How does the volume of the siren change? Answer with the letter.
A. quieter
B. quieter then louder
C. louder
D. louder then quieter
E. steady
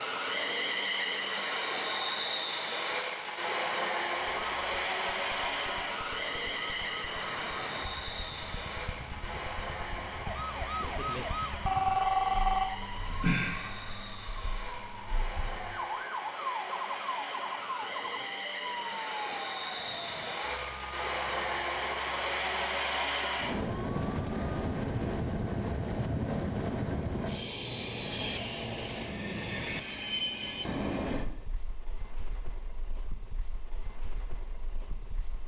D.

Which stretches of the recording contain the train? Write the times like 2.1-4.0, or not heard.
0.0-35.4.